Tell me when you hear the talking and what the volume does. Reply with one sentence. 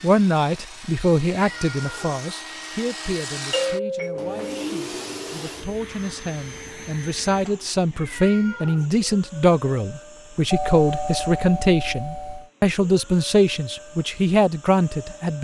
The talking can be heard from 0.0 to 15.3 s, getting quieter then louder.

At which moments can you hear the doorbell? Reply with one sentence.
The doorbell can be heard from 3.5 to 4.7 s and from 10.5 to 12.5 s.